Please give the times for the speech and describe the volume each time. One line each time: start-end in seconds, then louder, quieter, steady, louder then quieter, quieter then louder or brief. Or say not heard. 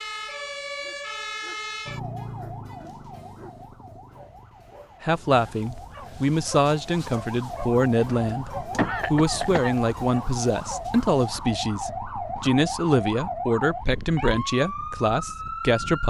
5.0-16.0 steady.